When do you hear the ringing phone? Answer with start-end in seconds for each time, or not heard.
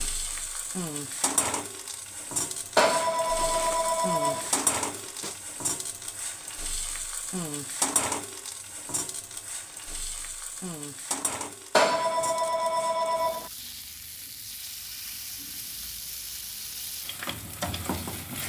2.8-4.5, 11.8-13.5.